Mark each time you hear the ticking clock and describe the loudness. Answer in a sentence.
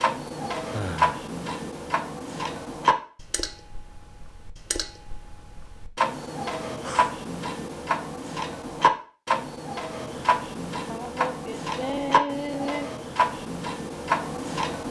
You can hear the ticking clock from 0.0 to 14.8 s, getting quieter then louder.